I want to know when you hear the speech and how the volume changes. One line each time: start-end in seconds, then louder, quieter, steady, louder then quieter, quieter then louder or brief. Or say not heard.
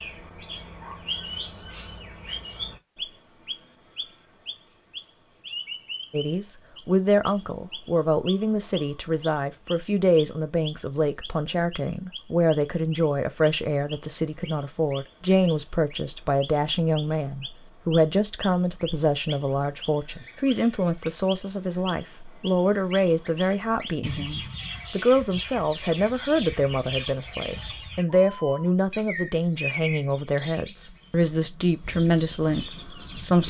6.1-33.4 steady.